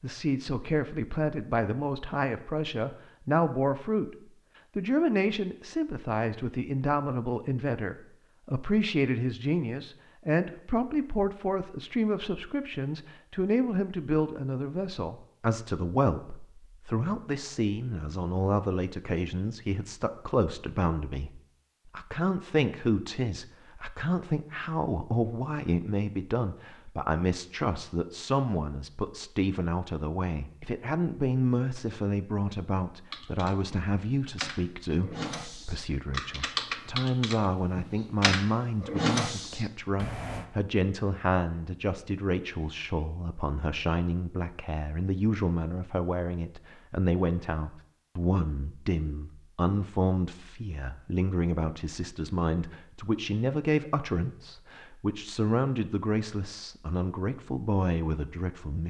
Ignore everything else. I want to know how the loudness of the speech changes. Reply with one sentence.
The loudness of the speech stays about the same.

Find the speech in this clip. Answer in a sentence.
You can hear the speech from 0.0 to 4.2 s and from 4.8 to 58.8 s.